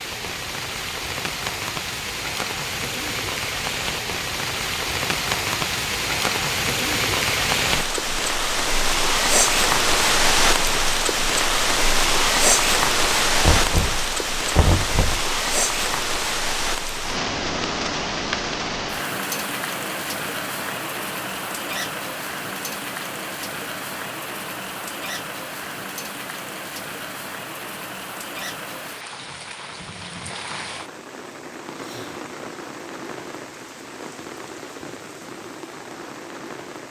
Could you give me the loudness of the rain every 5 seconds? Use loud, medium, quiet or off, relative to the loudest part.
medium, loud, loud, medium, medium, quiet, quiet, quiet.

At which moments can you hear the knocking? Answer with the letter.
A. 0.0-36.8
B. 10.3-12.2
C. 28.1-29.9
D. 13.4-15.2
D.